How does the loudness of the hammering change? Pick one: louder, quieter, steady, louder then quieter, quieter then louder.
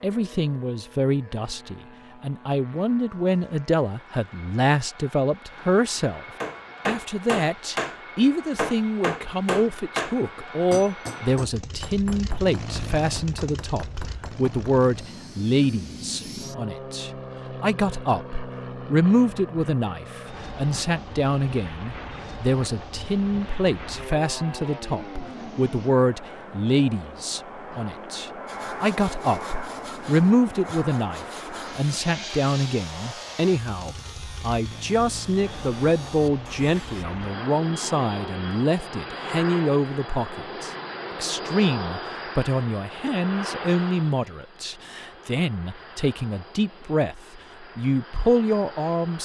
quieter.